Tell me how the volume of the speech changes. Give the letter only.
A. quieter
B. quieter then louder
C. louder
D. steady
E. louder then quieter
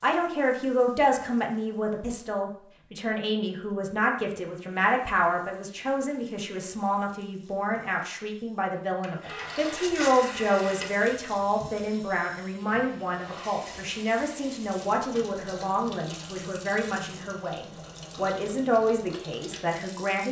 D.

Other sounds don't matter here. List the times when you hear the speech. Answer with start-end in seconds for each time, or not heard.
0.0-20.2.